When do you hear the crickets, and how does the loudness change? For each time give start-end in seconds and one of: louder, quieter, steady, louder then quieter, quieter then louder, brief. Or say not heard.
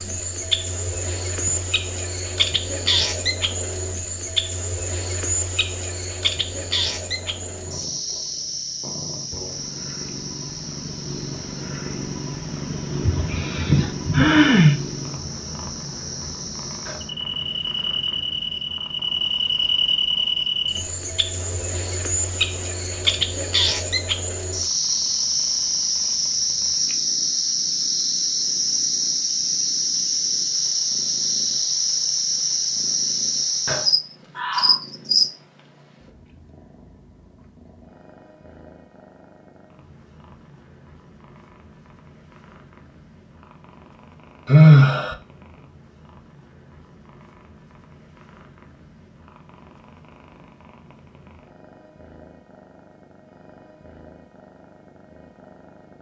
0.0-35.3 quieter then louder.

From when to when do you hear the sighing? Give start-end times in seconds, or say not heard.
13.1-14.8, 44.5-45.1.